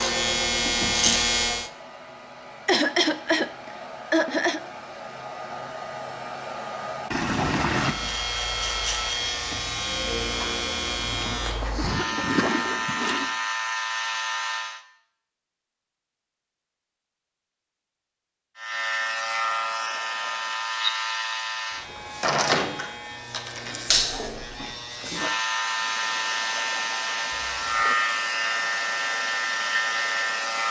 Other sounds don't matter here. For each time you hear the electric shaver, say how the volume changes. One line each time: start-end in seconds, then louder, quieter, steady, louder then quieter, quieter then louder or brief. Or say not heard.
0.0-1.7 brief
7.8-14.8 steady
18.6-30.6 steady.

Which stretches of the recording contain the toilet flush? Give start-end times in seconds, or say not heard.
7.1-8.0, 10.9-13.3, 23.9-24.8.